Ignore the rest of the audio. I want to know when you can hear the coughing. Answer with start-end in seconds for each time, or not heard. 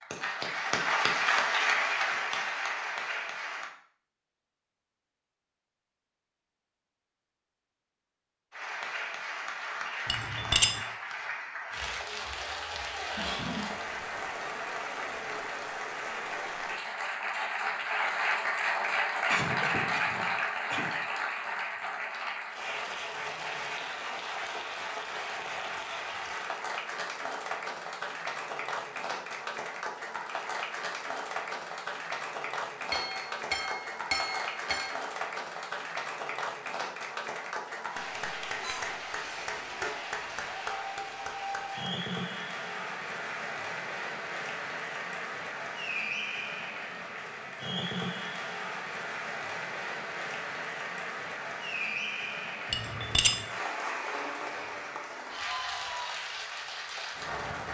13.2-13.8, 19.2-20.9, 38.6-40.0.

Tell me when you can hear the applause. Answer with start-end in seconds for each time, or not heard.
0.0-3.7, 8.5-57.7.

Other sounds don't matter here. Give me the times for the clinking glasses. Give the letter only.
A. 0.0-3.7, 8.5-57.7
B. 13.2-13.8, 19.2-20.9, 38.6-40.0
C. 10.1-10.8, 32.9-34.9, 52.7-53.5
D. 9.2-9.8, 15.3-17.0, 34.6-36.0
C.